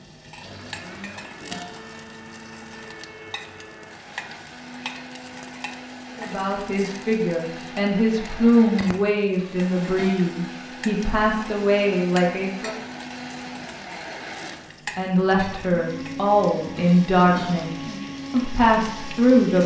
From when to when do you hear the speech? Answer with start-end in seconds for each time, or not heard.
6.2-12.8, 14.9-17.7, 18.3-19.6.